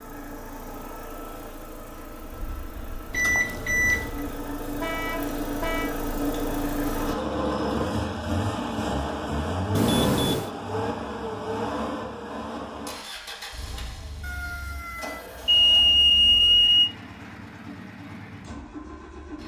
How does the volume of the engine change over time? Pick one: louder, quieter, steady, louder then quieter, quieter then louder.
louder then quieter.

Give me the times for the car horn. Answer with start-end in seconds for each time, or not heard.
4.8-5.9.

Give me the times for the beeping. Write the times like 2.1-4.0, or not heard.
3.1-4.1, 9.8-10.5, 14.2-16.9.